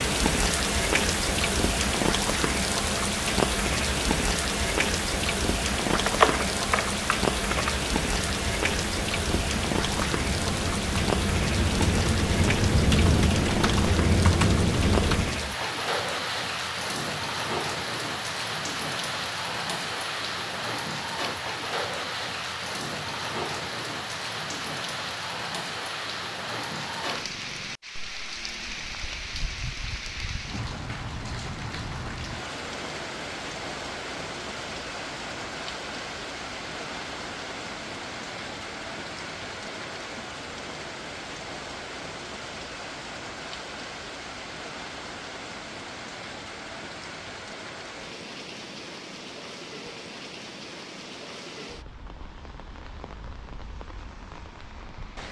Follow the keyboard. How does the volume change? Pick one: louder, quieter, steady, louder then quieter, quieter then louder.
quieter then louder.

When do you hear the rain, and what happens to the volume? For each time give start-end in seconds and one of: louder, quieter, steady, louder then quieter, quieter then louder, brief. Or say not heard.
0.0-55.2 quieter.